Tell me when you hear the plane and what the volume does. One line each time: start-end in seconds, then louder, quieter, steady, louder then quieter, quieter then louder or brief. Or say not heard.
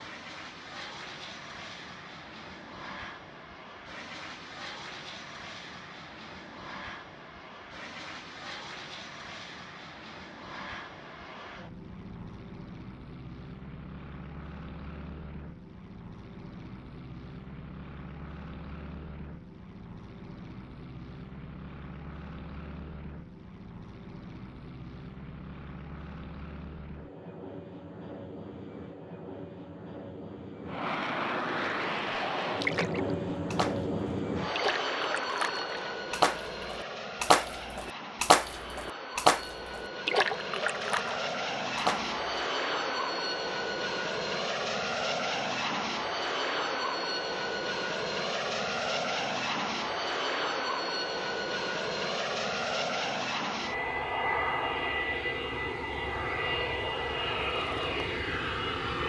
0.0-59.0 louder.